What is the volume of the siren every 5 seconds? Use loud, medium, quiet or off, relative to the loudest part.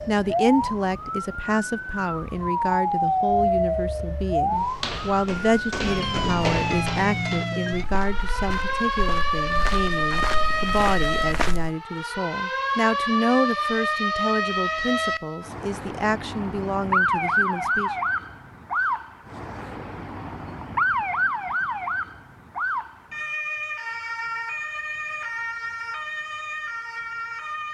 loud, loud, loud, loud, loud, medium.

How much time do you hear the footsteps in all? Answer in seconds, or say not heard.
7 s.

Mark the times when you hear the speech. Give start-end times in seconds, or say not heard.
0.1-17.9.